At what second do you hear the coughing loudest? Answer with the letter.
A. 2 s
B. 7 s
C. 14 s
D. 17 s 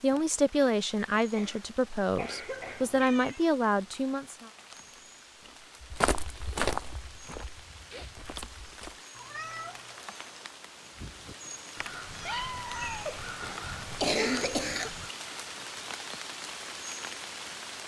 C.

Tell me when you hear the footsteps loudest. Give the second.
7 s.